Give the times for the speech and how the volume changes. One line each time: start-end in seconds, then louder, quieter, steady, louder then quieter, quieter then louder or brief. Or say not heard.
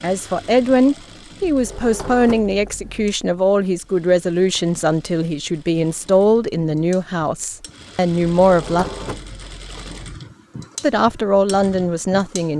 0.0-8.8 steady
10.8-12.5 brief.